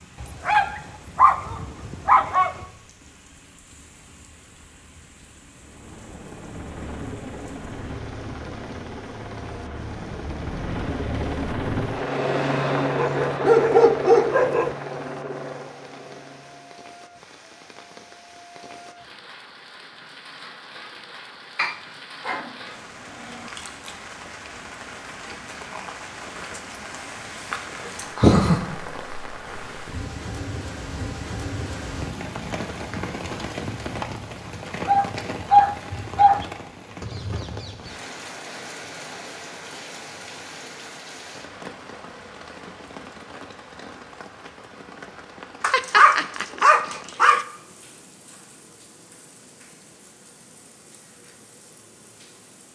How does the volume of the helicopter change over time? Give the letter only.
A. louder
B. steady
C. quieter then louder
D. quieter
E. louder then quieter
E.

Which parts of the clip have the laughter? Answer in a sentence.
You can hear the laughter from 28.1 to 28.6 s.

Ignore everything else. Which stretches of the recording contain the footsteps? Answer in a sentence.
The footsteps can't be heard in this clip.